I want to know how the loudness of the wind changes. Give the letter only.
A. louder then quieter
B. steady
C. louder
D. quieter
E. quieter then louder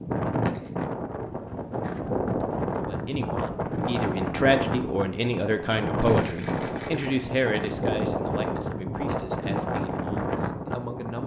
B.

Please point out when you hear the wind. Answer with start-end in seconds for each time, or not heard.
0.0-11.2.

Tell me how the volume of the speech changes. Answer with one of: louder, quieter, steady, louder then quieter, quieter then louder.
quieter.